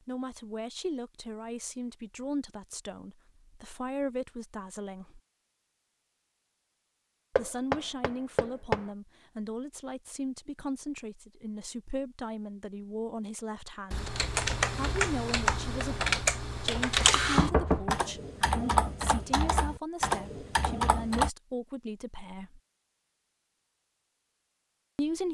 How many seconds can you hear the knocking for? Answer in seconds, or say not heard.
2 s.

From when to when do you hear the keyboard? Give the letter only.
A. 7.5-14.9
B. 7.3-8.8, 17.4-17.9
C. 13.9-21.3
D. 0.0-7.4
C.